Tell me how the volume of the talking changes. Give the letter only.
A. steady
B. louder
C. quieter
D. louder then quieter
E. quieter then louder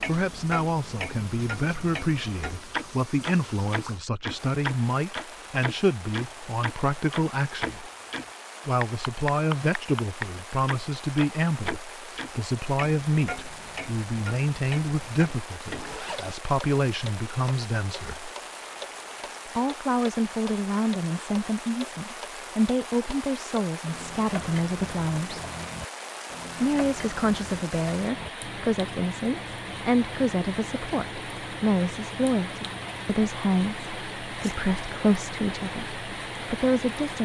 A.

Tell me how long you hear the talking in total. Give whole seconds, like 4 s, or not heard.
34 s.